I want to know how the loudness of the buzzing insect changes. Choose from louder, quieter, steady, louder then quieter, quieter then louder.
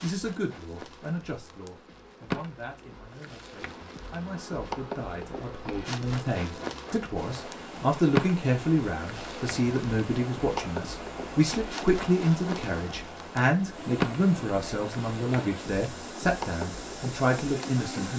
louder then quieter.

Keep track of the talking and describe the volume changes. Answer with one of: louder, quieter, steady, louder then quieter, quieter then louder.
louder.